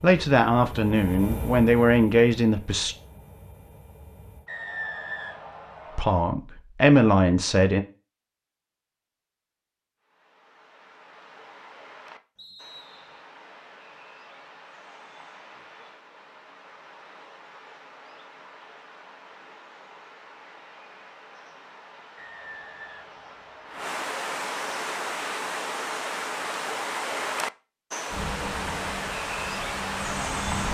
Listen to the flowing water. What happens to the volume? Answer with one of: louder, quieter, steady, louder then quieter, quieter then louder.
louder.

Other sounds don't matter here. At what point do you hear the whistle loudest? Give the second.
5 s.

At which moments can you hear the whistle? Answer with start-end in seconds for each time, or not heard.
4.5-6.2, 12.3-13.2, 22.1-23.8.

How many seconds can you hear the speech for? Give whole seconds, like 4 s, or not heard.
5 s.